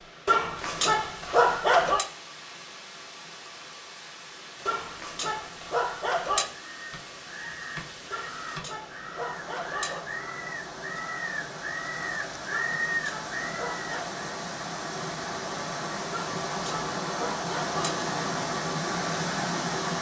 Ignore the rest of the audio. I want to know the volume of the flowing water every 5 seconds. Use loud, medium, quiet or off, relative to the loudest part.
quiet, quiet, medium, loud.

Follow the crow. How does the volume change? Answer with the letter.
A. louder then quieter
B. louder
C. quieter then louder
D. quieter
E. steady
B.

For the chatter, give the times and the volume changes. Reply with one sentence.
You can't hear the chatter here.